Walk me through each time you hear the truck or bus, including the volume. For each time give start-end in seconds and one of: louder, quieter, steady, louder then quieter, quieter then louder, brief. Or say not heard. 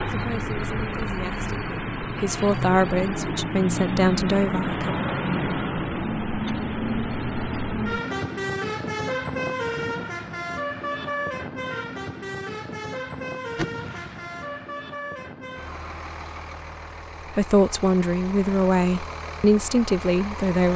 0.0-20.7 quieter.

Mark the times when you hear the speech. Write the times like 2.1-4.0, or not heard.
0.1-5.1, 17.3-20.7.